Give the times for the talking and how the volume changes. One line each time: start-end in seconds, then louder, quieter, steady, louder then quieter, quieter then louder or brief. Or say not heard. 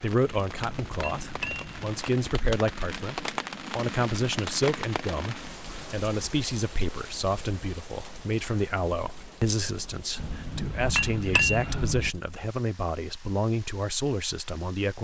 0.0-14.9 steady.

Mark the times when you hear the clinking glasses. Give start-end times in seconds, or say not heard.
0.5-2.0, 10.2-12.1.